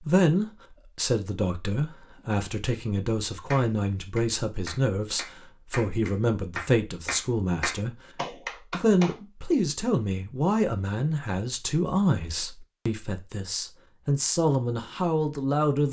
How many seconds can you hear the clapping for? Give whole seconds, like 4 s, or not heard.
6 s.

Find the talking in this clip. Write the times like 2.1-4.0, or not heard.
0.0-8.0, 8.7-15.8.